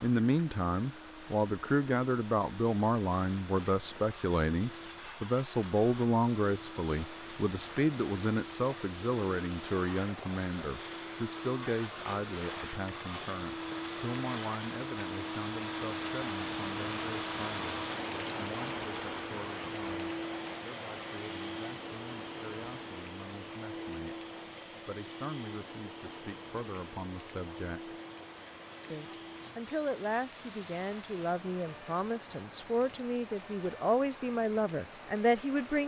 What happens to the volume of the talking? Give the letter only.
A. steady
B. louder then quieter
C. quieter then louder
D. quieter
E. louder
C.